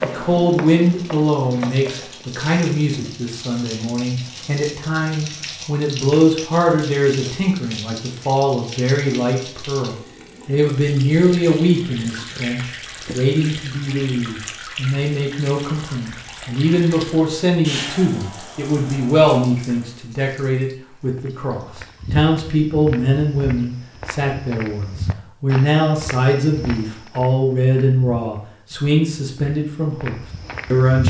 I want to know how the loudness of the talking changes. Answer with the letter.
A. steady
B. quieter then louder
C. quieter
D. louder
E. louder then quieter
A.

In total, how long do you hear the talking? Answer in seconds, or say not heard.
31 s.